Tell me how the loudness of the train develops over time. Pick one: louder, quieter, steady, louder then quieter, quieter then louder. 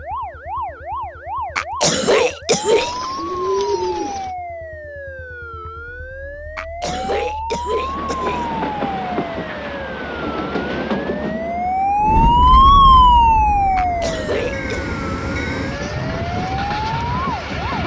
quieter then louder.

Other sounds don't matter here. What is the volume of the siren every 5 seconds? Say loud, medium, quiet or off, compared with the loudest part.
quiet, quiet, loud, quiet.